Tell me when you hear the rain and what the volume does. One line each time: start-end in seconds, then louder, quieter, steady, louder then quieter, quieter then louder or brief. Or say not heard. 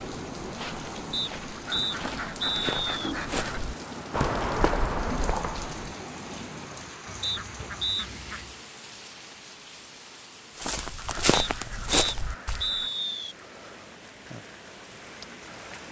0.0-15.8 quieter.